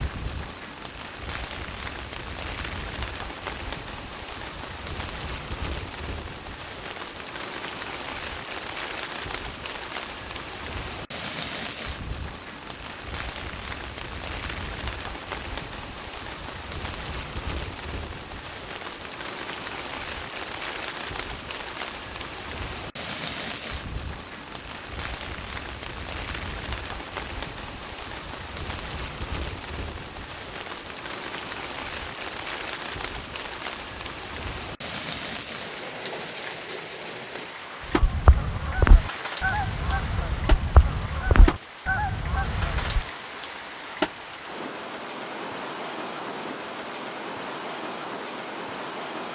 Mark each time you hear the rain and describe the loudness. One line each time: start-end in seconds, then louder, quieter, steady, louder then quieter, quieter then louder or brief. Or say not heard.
0.0-49.3 steady.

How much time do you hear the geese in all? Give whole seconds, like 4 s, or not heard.
5 s.